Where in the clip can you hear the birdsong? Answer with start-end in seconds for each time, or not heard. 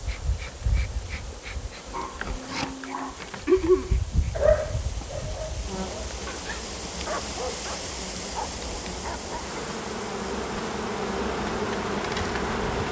not heard.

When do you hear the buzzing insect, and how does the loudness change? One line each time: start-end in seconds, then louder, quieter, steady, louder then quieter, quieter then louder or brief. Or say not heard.
0.0-12.8 louder.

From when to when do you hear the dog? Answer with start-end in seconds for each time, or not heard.
1.9-9.6.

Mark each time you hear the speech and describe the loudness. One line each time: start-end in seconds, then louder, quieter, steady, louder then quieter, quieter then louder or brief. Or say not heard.
not heard.